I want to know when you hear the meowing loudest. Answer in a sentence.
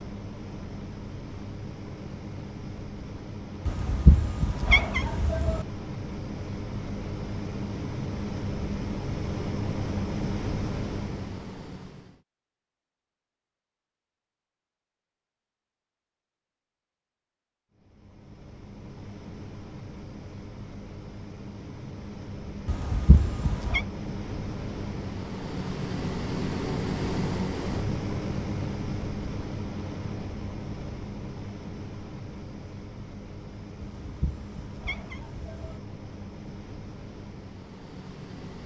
The loudest moment of the meowing is at 4 seconds.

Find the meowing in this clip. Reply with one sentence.
You can hear the meowing from 3.6 to 5.7 s, from 22.6 to 23.9 s and from 33.8 to 35.8 s.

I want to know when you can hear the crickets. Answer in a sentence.
You can't hear the crickets here.